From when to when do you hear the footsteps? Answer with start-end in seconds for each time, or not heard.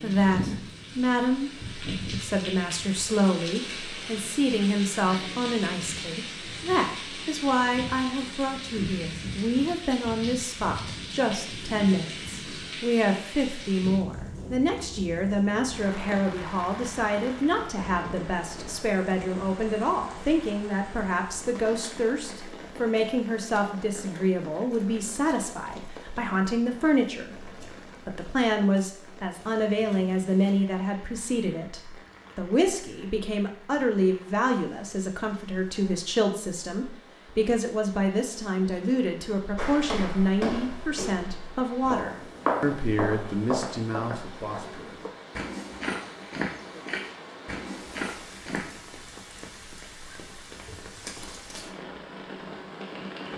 39.5-48.8.